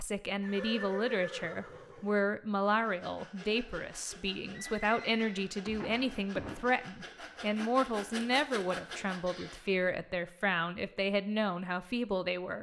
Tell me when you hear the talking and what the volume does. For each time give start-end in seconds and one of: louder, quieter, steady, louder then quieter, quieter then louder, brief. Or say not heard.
0.0-12.5 steady.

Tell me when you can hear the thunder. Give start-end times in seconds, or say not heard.
not heard.